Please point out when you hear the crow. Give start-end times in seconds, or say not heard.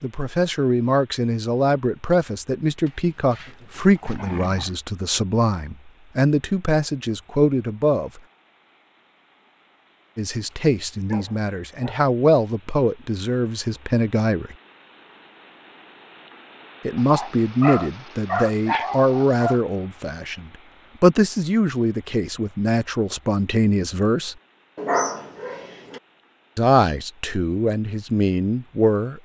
not heard.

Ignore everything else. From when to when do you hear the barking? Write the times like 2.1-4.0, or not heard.
2.9-4.8, 10.3-12.0, 16.9-19.6, 24.8-26.0.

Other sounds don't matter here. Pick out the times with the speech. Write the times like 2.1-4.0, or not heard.
0.0-8.2, 10.2-14.6, 16.9-24.4, 26.6-29.2.